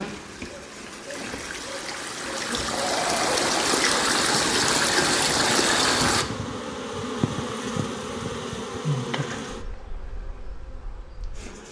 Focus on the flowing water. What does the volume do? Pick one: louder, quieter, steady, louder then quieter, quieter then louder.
louder.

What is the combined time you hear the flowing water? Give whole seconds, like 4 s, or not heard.
6 s.